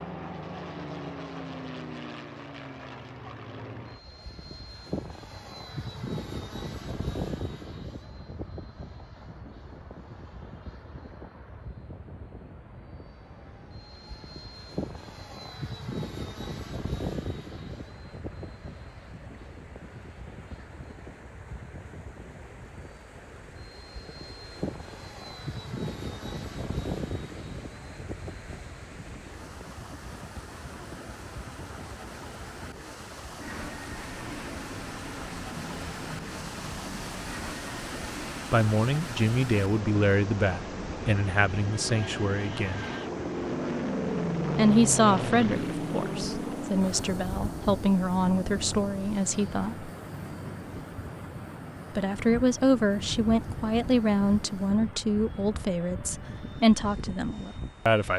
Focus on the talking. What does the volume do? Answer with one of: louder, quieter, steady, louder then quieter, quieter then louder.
steady.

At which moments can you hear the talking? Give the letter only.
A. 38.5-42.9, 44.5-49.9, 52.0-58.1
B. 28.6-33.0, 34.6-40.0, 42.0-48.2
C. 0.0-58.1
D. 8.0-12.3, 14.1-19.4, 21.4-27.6
A.